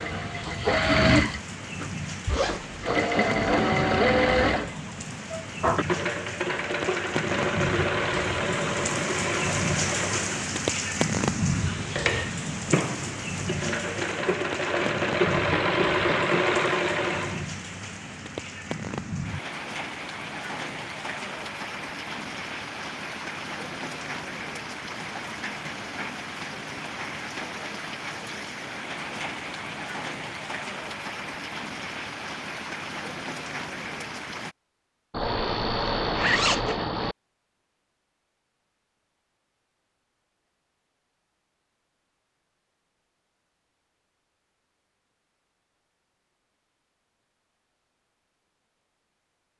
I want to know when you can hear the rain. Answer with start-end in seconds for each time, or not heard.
0.0-34.5.